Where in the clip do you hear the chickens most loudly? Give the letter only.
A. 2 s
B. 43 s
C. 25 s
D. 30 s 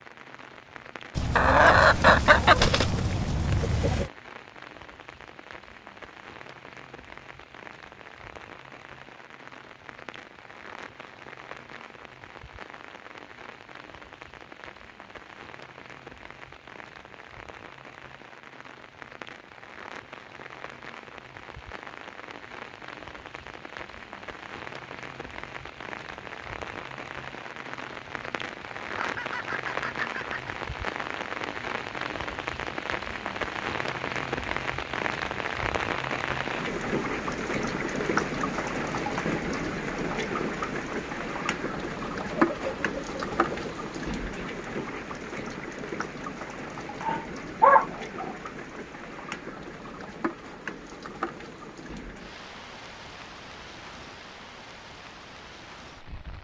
A.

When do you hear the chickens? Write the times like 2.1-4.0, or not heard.
1.1-4.1, 28.9-30.6, 42.3-43.8.